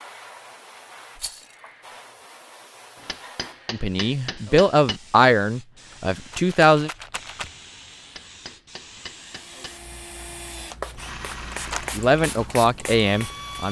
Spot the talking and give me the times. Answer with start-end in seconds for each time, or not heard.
3.7-6.9, 11.9-13.6.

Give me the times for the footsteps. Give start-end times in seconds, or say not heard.
not heard.